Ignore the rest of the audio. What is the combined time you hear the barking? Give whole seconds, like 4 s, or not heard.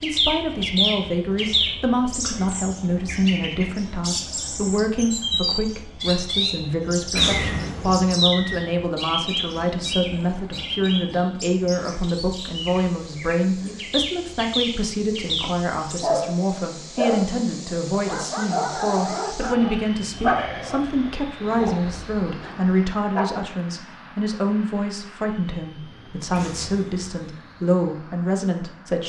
8 s.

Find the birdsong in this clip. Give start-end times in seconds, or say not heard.
0.0-16.0.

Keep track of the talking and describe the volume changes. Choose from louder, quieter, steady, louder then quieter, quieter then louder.
steady.